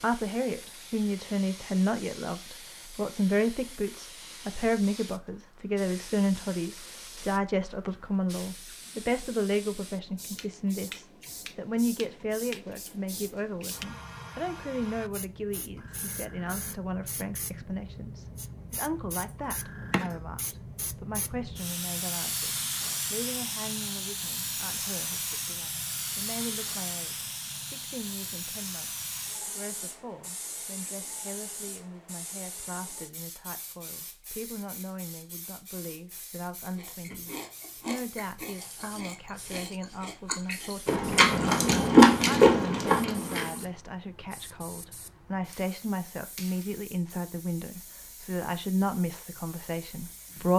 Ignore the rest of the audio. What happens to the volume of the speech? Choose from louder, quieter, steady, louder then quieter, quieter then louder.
quieter then louder.